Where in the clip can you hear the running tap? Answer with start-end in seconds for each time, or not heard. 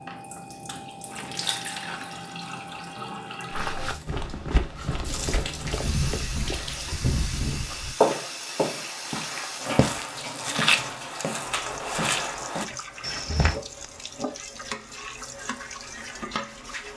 0.0-16.9.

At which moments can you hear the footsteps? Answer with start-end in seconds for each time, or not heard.
3.5-13.6.